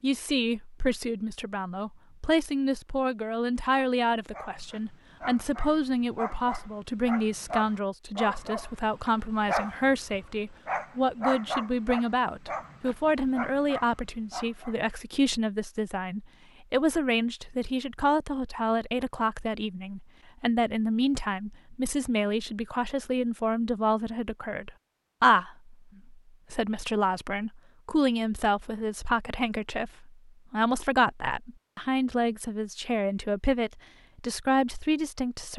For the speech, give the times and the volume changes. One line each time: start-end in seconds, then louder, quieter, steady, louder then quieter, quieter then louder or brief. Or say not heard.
0.0-35.5 steady.